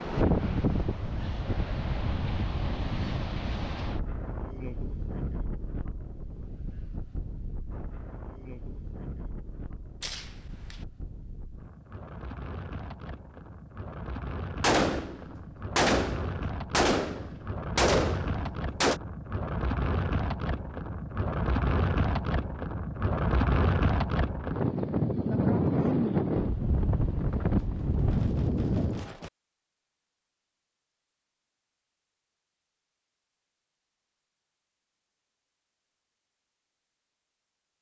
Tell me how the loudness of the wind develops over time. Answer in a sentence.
The loudness of the wind goes down, then up.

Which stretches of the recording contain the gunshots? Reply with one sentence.
You can hear the gunshots from 10.0 to 10.8 s, from 14.6 to 19.0 s and from 27.6 to 29.3 s.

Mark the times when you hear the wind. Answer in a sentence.
You can hear the wind from 0.0 to 29.1 s.